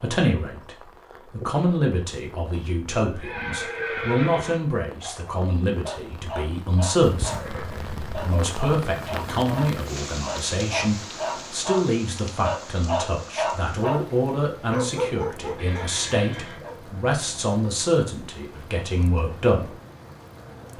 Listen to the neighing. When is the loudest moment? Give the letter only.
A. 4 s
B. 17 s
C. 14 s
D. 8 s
A.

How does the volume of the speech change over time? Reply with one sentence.
The volume of the speech stays about the same.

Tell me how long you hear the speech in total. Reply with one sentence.
You can hear the speech for 20 seconds altogether.